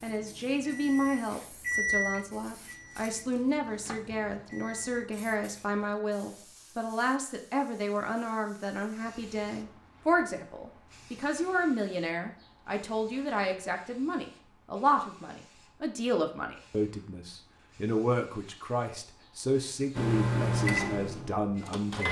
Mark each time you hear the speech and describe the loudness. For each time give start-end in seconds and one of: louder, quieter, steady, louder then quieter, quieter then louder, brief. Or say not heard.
0.0-22.0 steady.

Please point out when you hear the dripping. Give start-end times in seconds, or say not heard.
not heard.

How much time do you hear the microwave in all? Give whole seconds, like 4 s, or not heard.
7 s.